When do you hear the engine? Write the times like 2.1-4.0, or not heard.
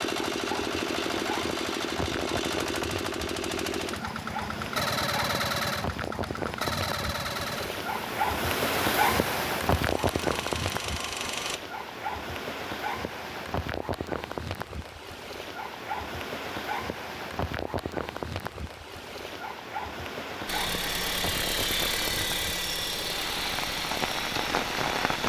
0.0-11.6, 20.4-25.2.